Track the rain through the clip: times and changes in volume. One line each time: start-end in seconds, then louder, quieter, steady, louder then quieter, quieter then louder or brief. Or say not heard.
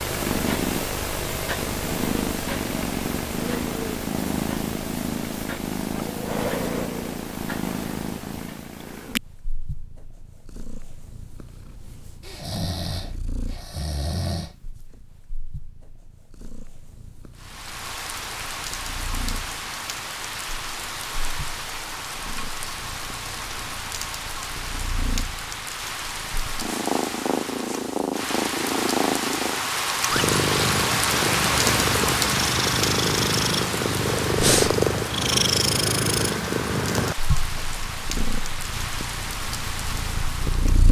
17.4-40.8 louder then quieter.